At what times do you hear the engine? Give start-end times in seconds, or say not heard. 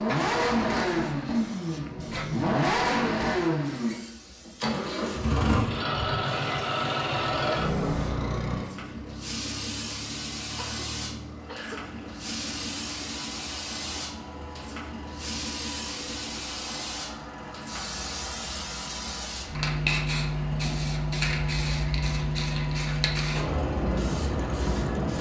0.0-25.1.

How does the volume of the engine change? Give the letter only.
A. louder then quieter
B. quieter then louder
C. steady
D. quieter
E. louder
D.